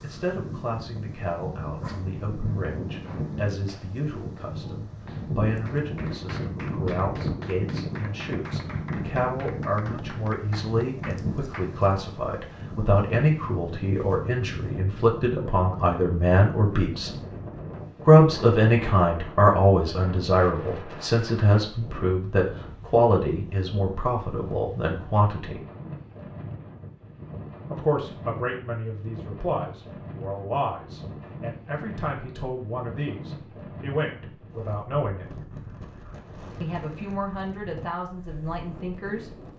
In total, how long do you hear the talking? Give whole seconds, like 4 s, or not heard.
35 s.